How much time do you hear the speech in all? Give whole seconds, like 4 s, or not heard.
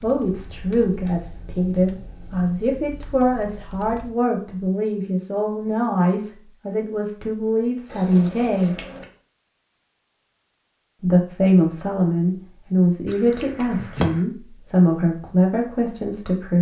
14 s.